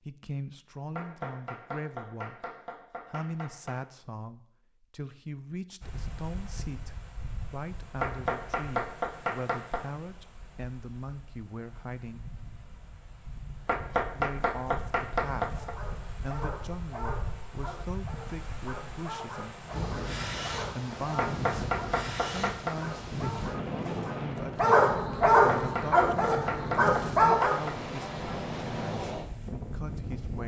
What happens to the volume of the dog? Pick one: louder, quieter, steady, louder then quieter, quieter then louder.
louder.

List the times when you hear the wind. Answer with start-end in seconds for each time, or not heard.
5.8-30.4.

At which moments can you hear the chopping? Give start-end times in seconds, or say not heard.
0.9-3.8, 8.0-9.8, 13.7-15.8, 21.1-22.8, 25.2-27.8.